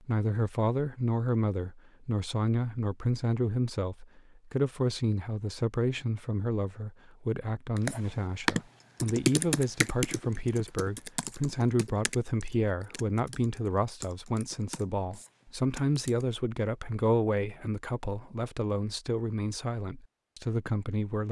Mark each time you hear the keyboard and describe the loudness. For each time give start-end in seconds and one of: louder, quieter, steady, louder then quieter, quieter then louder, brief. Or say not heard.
7.8-16.2 quieter.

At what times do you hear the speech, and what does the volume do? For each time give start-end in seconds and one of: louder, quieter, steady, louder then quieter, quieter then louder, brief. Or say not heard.
0.1-21.2 steady.